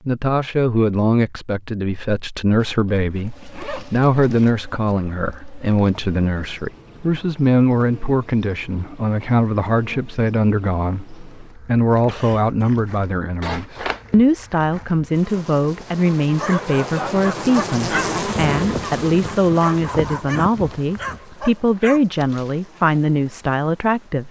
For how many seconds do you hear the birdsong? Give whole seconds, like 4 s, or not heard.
not heard.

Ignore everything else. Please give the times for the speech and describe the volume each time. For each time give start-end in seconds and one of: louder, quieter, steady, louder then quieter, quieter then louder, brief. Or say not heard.
0.1-24.2 steady.